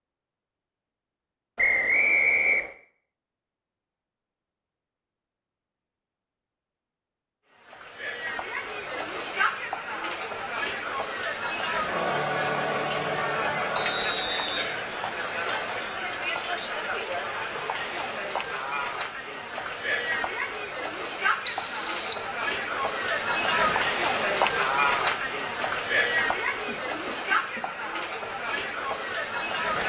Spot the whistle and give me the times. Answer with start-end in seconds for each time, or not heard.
1.6-2.7, 13.8-14.5, 21.4-22.2.